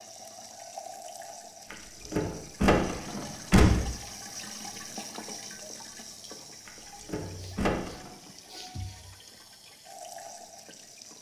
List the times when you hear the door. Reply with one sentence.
The door can be heard from 1.7 to 3.7 s and from 6.7 to 8.1 s.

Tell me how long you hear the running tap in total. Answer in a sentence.
The running tap can be heard for 11 seconds in total.